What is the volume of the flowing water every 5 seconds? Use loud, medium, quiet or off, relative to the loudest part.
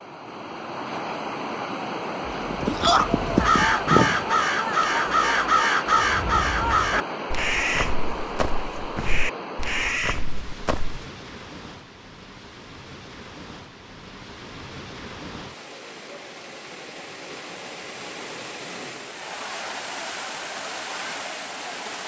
loud, loud, medium, medium, loud.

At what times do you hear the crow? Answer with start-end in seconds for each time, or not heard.
3.4-11.1.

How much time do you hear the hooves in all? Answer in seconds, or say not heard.
2 s.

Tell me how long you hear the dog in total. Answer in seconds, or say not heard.
not heard.